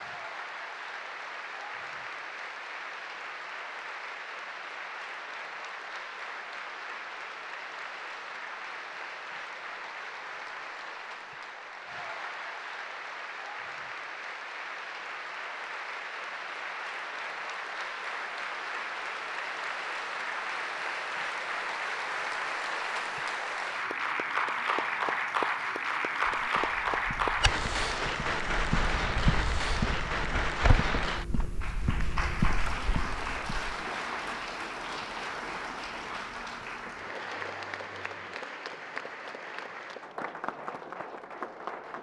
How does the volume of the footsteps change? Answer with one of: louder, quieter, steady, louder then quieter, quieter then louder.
louder.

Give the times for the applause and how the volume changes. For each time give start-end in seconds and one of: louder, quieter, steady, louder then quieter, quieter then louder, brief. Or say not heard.
0.0-41.9 louder then quieter.